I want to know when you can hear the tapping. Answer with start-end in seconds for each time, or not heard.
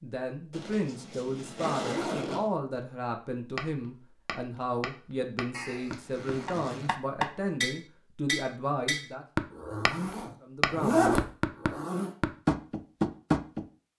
3.5-9.9, 10.6-13.7.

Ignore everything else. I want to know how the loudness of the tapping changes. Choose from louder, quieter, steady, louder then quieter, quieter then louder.
louder.